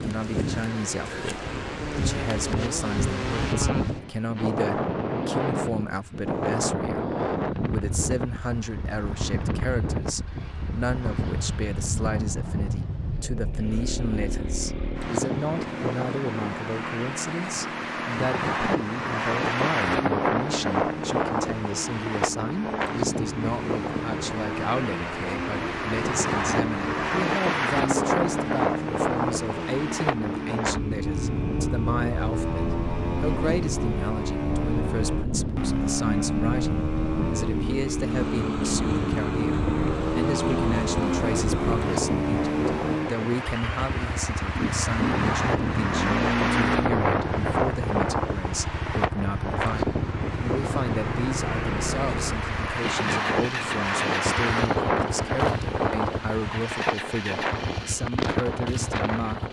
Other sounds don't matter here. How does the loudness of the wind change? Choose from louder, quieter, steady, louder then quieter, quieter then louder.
steady.